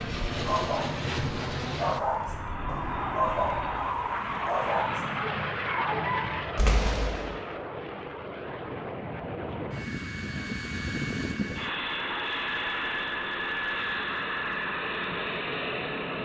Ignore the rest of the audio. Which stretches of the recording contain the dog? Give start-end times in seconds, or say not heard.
0.5-6.5.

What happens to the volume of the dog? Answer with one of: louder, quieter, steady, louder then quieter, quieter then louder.
steady.